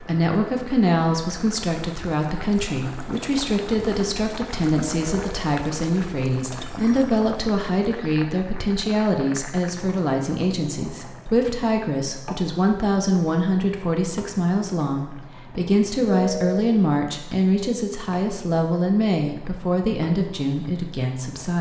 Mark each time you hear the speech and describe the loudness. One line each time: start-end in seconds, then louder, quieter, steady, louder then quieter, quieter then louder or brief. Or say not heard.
0.0-21.5 steady.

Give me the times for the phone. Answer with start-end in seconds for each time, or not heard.
4.8-5.3, 16.1-16.6.